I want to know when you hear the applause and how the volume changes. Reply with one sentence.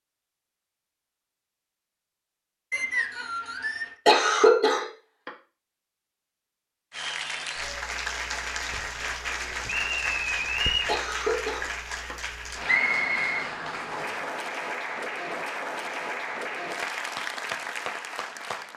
The applause can be heard from 6.9 to 18.7 s, at a steady volume.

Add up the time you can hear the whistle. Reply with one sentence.
The whistle can be heard for 4 seconds in total.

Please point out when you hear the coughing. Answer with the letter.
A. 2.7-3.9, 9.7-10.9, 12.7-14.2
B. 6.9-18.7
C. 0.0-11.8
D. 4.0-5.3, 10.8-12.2
D.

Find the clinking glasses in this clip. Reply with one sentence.
You can't hear the clinking glasses here.